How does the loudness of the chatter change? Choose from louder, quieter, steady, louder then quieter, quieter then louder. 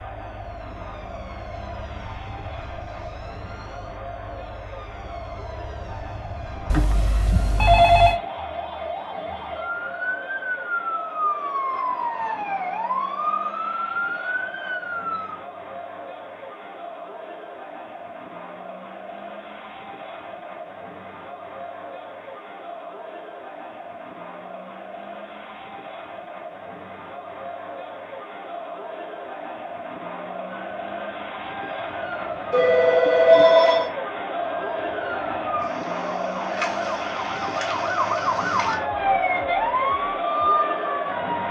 louder.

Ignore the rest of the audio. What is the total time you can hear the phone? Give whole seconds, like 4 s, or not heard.
3 s.